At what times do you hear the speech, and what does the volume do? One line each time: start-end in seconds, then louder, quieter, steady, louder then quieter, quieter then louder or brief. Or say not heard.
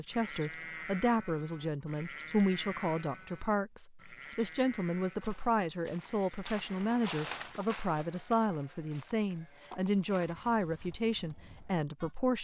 0.0-12.3 steady.